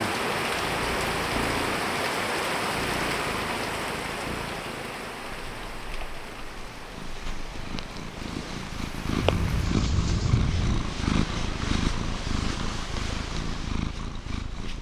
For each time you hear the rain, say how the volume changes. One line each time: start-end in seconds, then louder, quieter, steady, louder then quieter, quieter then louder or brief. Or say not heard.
0.0-10.4 quieter.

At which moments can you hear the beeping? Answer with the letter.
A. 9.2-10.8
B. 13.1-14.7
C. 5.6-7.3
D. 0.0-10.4
A.